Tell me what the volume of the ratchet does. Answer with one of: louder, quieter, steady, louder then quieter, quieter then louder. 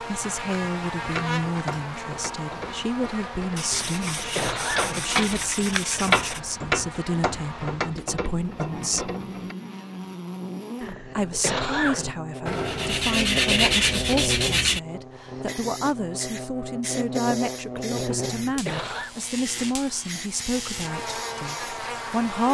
louder then quieter.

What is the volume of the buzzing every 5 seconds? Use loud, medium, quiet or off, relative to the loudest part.
loud, medium, loud, loud, loud.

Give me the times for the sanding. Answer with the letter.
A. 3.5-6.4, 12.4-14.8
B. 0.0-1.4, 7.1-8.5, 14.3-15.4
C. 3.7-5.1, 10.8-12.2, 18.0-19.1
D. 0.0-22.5
A.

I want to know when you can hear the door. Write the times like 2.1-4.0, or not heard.
not heard.